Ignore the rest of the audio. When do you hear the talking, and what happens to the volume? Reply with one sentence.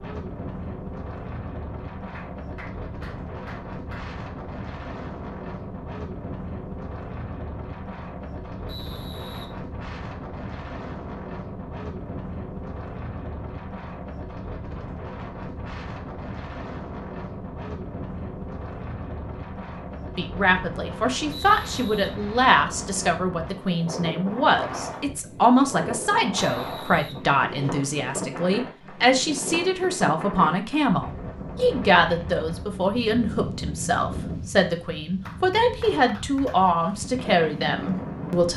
The talking can be heard from 20.1 to 38.5 s, at a steady volume.